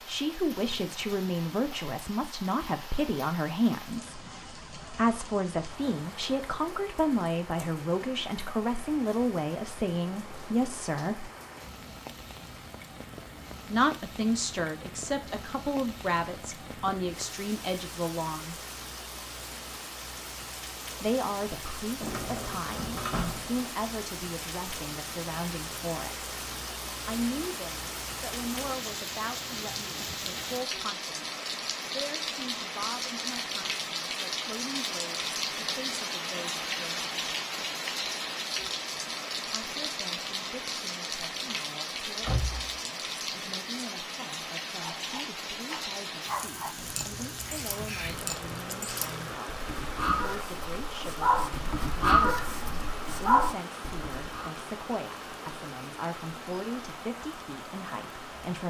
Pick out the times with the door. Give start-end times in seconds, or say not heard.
22.0-23.6, 42.2-42.6.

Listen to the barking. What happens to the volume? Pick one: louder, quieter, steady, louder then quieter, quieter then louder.
louder.